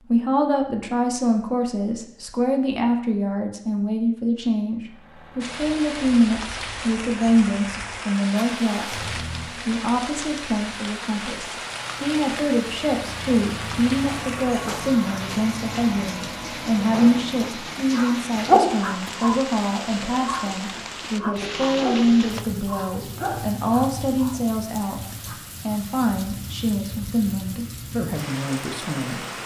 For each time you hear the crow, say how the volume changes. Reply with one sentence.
You can't hear the crow here.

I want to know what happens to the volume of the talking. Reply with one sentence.
The loudness of the talking stays about the same.